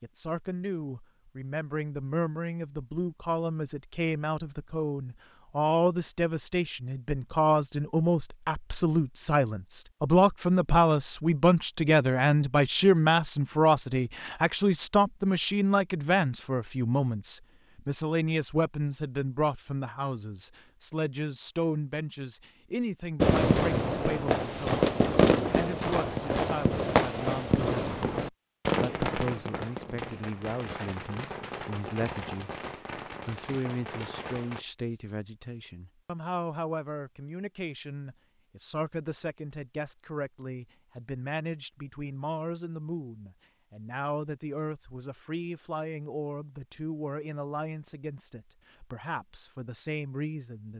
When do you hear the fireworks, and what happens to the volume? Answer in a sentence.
The fireworks can be heard from 23.2 to 34.6 s, getting quieter.